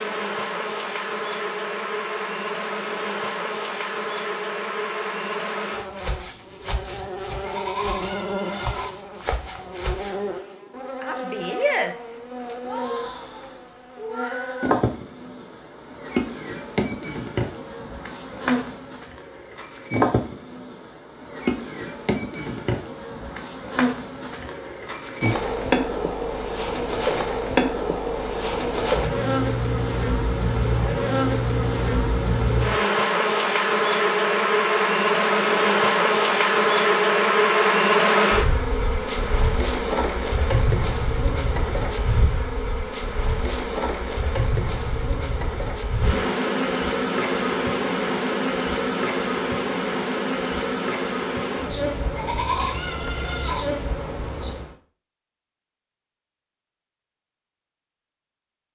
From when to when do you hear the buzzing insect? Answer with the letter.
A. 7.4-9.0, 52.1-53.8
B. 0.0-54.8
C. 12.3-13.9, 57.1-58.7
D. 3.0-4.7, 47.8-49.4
B.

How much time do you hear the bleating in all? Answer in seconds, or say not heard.
3 s.